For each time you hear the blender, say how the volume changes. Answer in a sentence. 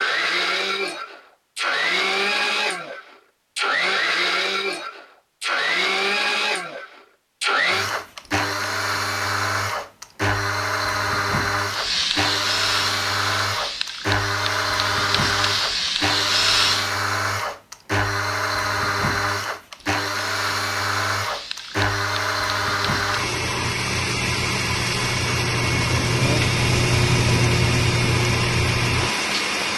You can hear the blender from 0.0 to 29.7 s, at a steady volume.